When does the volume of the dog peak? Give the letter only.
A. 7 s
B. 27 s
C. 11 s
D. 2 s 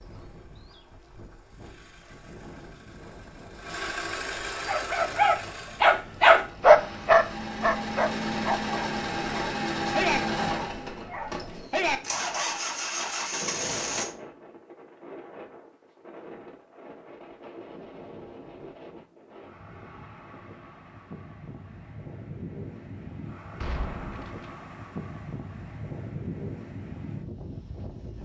A.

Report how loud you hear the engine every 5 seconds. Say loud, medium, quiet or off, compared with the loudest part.
medium, loud, loud, off, off, off.